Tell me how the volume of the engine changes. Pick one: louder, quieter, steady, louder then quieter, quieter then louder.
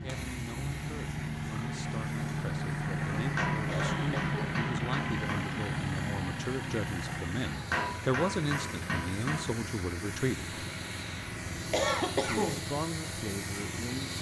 quieter.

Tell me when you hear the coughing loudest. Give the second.
12 s.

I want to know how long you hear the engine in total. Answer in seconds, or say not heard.
14 s.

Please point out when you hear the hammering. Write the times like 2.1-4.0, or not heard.
3.4-5.3, 7.7-9.5.